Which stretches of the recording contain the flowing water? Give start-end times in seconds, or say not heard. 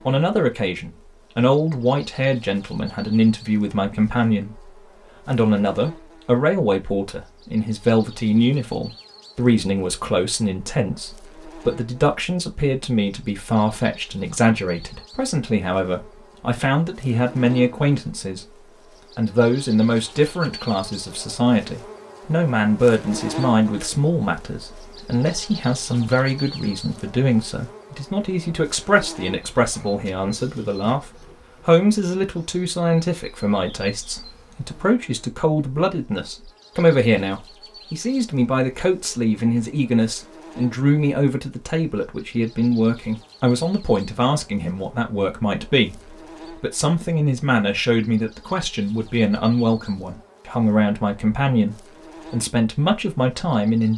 not heard.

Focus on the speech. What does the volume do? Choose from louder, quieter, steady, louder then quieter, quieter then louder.
steady.